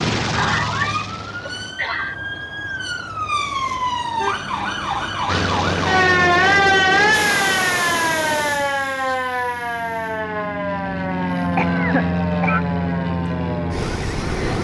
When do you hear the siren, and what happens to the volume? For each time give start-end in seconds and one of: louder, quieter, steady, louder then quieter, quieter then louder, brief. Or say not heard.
0.1-14.6 louder then quieter.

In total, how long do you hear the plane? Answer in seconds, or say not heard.
11 s.